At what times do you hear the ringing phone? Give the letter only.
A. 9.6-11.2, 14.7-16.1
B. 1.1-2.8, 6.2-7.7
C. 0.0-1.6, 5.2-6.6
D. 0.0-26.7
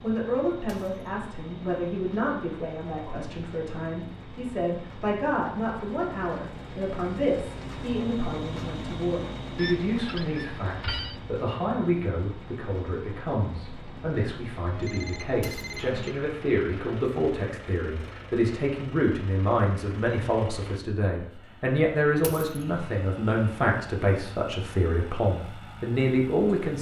A.